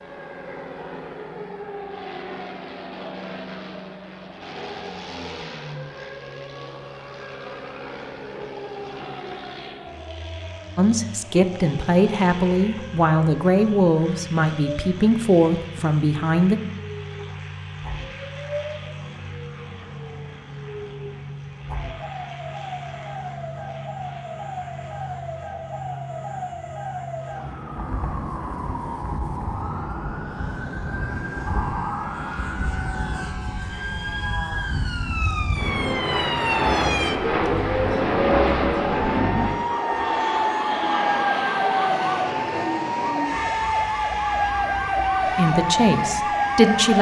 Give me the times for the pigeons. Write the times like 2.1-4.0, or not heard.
not heard.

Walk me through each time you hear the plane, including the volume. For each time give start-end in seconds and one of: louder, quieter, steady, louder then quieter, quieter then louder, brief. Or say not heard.
0.0-46.9 louder.